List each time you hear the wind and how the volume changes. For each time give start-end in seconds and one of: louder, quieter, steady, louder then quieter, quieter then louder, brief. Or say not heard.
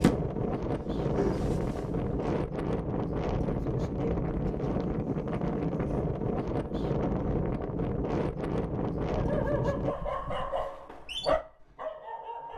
0.0-9.9 steady.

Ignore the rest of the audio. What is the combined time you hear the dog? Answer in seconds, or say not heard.
5 s.